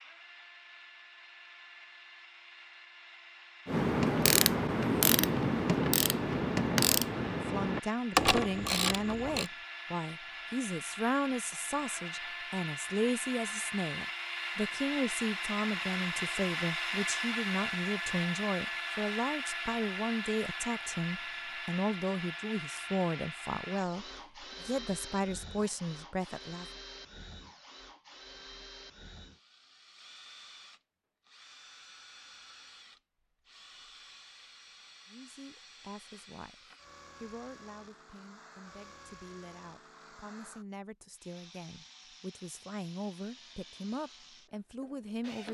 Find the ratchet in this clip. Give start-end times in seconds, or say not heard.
3.6-9.5.